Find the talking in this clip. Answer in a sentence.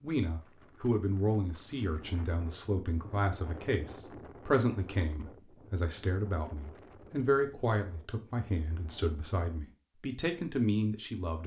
The talking can be heard from 0.0 to 11.4 s.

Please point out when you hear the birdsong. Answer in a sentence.
The birdsong can't be heard in this clip.